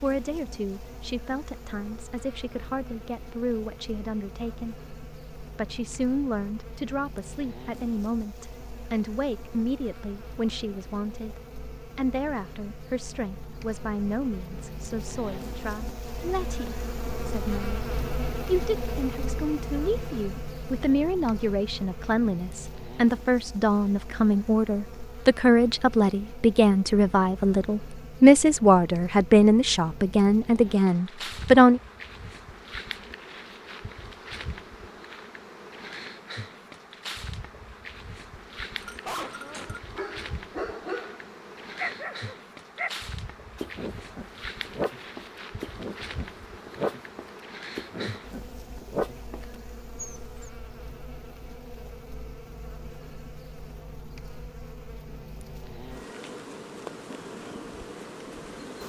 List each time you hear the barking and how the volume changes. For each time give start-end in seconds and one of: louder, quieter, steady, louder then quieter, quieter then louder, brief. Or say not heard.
38.8-50.5 steady.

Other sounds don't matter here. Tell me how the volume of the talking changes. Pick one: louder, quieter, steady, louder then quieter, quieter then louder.
louder.